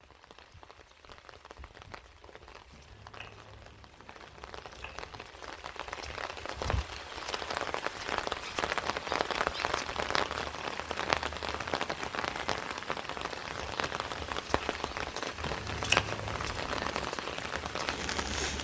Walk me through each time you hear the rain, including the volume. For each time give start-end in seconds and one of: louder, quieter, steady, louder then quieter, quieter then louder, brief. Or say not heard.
0.0-18.5 louder.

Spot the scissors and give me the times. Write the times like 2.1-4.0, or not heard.
2.7-5.2, 15.4-17.0.